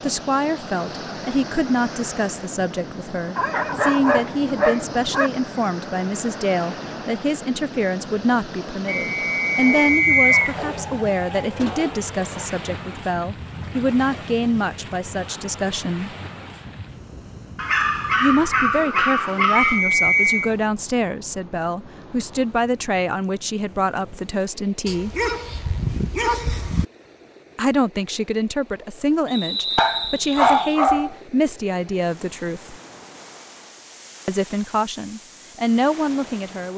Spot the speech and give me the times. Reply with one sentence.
The speech can be heard from 0.0 to 16.1 s, from 18.2 to 25.1 s, from 27.6 to 32.8 s and from 34.2 to 36.7 s.